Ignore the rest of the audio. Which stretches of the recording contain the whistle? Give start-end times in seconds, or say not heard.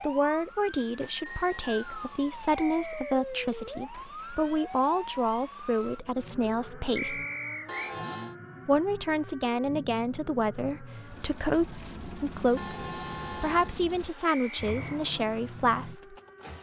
2.5-3.1, 7.0-8.0, 14.2-15.0.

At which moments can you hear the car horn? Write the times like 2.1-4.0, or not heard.
1.2-2.2, 7.7-8.3, 12.6-13.8.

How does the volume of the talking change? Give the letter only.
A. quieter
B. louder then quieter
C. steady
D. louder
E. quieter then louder
C.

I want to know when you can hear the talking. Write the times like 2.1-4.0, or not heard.
0.0-7.2, 8.7-16.1.